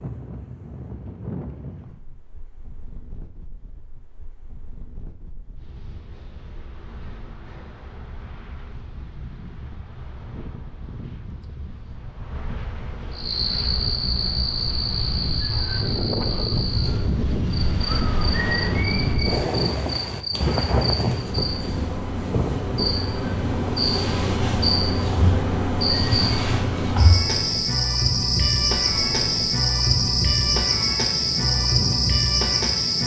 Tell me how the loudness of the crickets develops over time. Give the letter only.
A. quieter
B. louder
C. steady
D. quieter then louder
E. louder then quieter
B.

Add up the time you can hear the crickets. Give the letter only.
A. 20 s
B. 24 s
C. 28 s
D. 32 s
A.